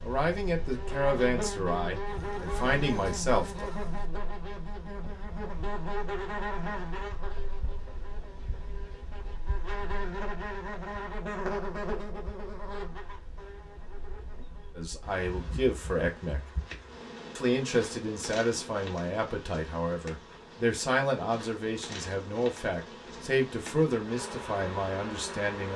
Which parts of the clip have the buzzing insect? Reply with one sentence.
You can hear the buzzing insect from 0.0 to 25.7 s.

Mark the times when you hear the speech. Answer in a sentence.
You can hear the speech from 0.0 to 3.7 s, from 14.8 to 16.4 s and from 17.4 to 25.7 s.